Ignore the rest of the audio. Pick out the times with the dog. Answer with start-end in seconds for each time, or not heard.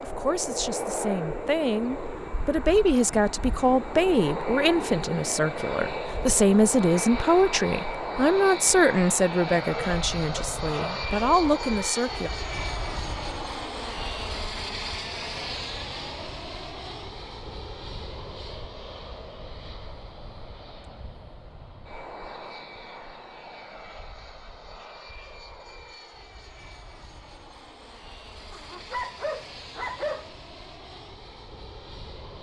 9.6-11.2, 28.5-30.3.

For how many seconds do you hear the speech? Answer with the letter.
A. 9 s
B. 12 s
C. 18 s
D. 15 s
B.